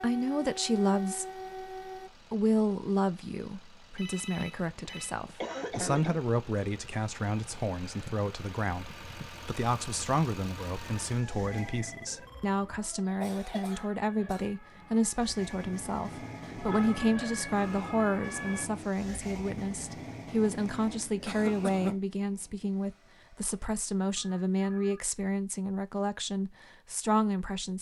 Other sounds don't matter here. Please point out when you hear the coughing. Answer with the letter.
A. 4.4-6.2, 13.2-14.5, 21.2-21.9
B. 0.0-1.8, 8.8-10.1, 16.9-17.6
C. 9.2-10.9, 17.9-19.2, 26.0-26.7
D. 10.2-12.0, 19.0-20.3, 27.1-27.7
A.